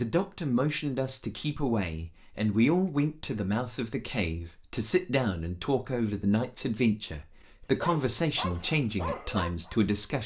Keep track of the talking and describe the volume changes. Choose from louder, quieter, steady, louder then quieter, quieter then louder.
steady.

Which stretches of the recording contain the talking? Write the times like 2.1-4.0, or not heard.
0.0-10.2.